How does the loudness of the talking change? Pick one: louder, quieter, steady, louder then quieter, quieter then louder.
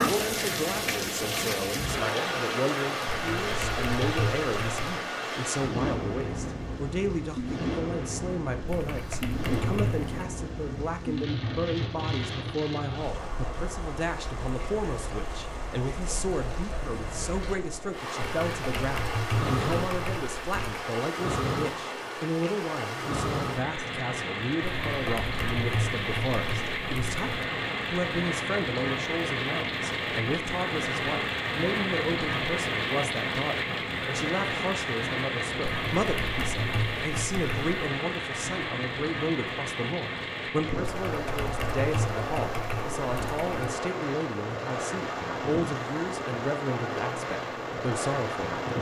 steady.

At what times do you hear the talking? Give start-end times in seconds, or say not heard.
0.0-48.7.